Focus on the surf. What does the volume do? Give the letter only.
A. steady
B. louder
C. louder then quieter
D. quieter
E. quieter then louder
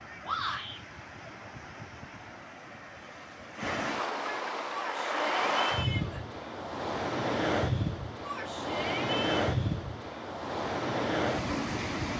B.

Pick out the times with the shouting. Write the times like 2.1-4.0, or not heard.
0.2-0.8, 4.7-6.2, 8.2-9.3.